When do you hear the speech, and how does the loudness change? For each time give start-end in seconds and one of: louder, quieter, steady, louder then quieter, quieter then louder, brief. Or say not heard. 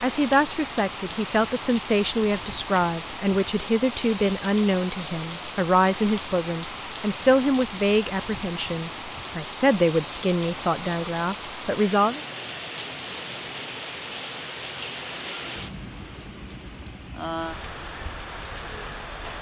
0.0-12.2 steady.